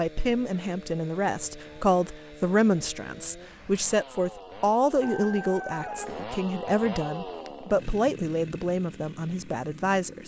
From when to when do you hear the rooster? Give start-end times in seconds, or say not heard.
5.0-6.2.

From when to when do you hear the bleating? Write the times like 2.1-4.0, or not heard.
not heard.